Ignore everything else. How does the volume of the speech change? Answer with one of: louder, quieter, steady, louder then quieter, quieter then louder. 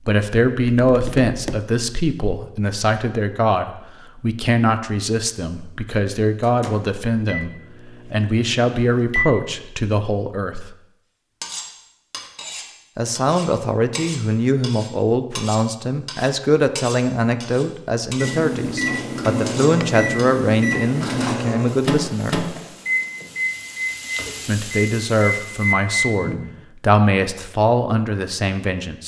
steady.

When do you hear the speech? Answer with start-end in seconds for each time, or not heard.
0.1-10.7, 12.9-22.4, 24.4-29.0.